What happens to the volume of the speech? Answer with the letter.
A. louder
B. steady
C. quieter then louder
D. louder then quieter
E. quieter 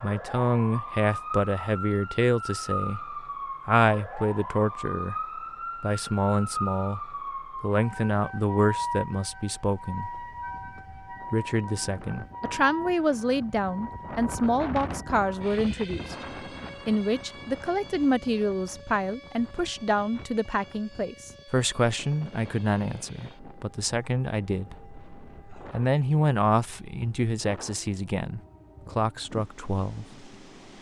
B.